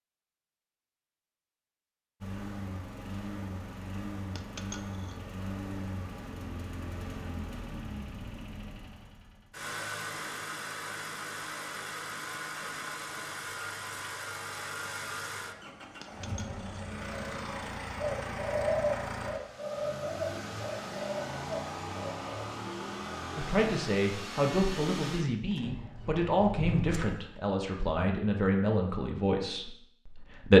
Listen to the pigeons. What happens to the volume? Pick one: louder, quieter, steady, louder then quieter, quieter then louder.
quieter.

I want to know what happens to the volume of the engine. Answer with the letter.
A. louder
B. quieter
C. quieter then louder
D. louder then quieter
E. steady
E.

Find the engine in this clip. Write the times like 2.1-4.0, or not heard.
2.2-27.4.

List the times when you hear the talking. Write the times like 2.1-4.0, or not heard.
23.4-30.5.